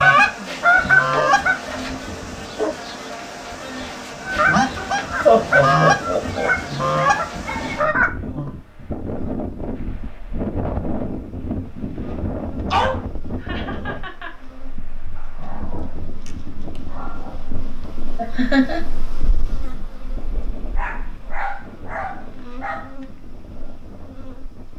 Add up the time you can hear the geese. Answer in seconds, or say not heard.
6 s.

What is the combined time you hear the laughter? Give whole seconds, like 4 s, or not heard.
3 s.